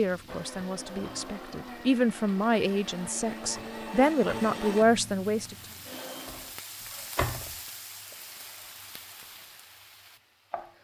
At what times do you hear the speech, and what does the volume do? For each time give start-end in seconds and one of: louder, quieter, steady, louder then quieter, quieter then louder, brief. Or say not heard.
0.0-5.5 louder.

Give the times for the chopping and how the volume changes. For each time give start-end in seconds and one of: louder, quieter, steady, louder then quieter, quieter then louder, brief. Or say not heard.
not heard.